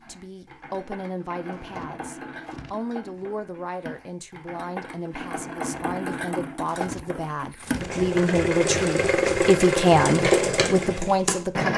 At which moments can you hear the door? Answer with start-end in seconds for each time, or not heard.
not heard.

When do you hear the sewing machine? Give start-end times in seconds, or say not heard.
0.0-11.7.